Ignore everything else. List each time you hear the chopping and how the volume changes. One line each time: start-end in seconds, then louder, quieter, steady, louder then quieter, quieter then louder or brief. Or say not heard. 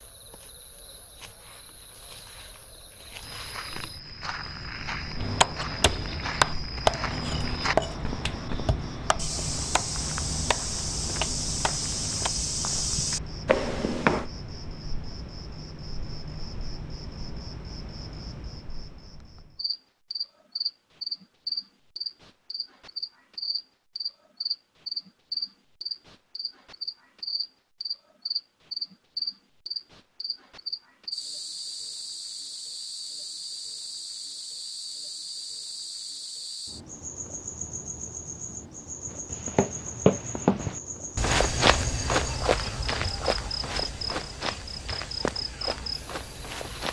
5.2-12.3 quieter.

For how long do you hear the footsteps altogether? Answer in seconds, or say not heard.
19 s.